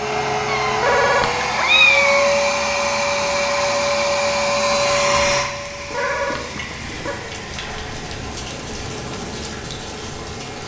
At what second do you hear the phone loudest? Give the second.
1 s.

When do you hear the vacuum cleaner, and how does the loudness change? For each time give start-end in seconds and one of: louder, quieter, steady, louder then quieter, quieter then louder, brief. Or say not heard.
0.0-10.6 quieter.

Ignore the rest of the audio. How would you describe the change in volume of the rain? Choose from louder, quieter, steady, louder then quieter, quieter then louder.
louder.